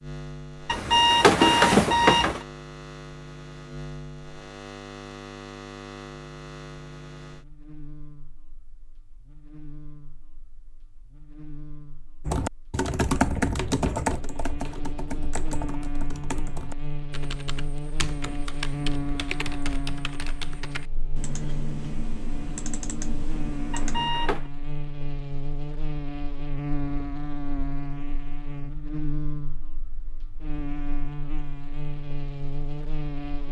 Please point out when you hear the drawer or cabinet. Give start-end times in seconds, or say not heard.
not heard.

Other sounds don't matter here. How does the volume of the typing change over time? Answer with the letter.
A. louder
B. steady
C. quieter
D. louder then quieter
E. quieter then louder
C.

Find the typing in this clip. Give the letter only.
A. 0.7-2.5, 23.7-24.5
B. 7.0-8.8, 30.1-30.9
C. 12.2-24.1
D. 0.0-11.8
C.